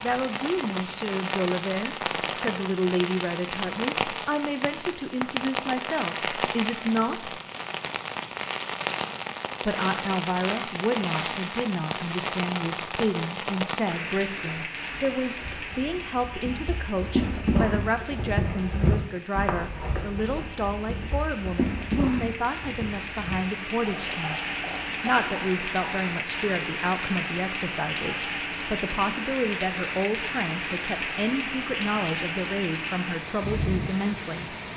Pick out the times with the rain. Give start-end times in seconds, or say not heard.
0.0-34.7.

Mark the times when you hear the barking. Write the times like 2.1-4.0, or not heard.
not heard.